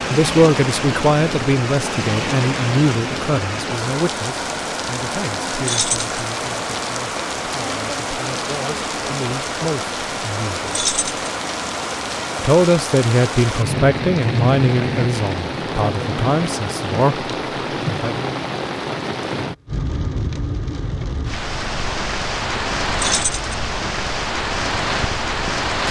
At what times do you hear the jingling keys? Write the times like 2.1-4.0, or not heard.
5.7-6.1, 10.7-11.3, 22.9-23.5.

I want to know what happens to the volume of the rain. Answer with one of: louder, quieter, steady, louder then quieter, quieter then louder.
steady.